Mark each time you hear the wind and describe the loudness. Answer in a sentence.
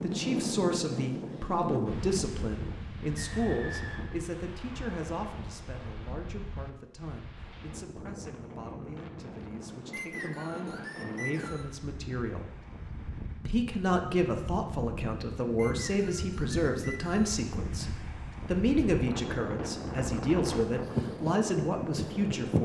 You can hear the wind from 0.0 to 22.6 s, getting quieter then louder.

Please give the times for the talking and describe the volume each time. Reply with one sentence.
You can hear the talking from 0.0 to 12.5 s, getting quieter then louder; and from 13.4 to 22.6 s, at a steady volume.